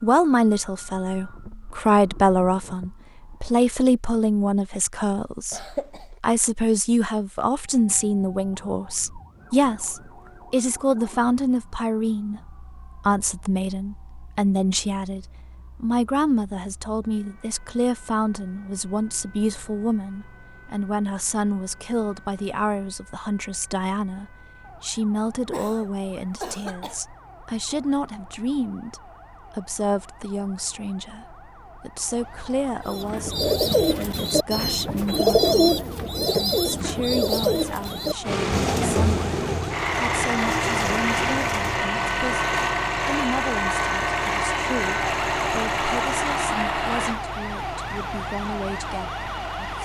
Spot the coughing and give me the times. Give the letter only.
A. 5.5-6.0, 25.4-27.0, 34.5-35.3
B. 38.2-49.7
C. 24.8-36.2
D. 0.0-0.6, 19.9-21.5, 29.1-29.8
A.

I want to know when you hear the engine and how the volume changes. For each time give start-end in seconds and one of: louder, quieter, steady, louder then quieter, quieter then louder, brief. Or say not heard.
38.2-49.7 quieter.